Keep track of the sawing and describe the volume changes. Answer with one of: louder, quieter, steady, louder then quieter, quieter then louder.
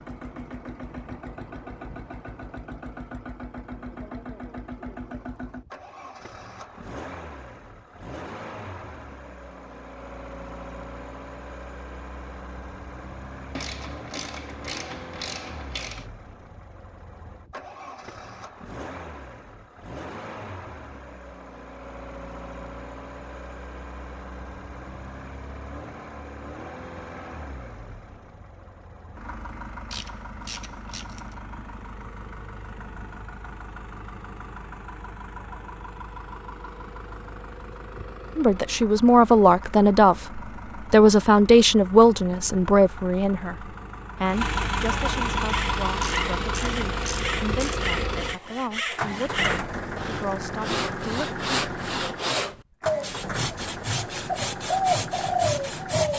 louder.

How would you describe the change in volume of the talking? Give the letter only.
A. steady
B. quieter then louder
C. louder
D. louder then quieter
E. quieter
E.